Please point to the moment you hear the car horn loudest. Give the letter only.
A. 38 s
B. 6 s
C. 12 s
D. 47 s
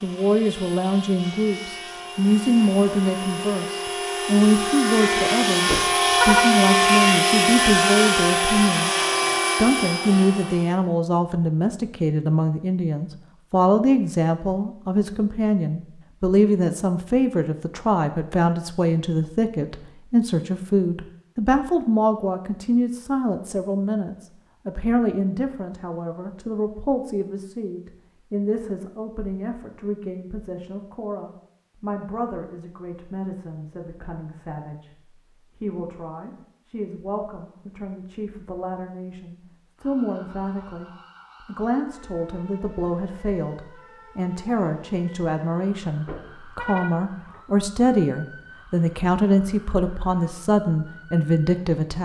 B.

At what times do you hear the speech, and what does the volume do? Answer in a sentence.
You can hear the speech from 0.0 to 52.0 s, getting quieter then louder.